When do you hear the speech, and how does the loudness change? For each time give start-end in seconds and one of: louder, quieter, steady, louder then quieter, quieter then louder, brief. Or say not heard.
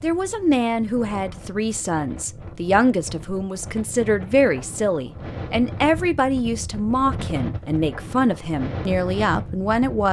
0.0-10.0 steady.